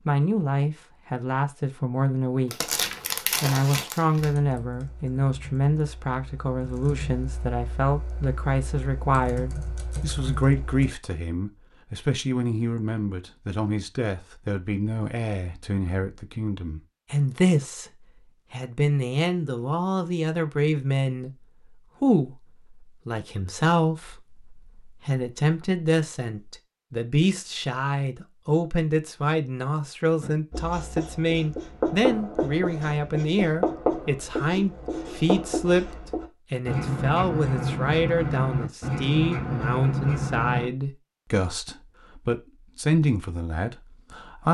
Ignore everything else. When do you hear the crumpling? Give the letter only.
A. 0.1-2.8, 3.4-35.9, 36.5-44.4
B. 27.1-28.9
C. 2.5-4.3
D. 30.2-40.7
C.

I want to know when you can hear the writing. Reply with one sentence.
The writing can be heard from 30.2 to 40.7 s.